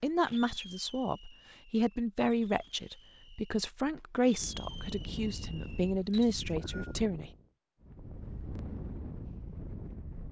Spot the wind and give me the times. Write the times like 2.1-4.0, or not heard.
4.3-10.2.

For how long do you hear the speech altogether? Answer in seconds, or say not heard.
7 s.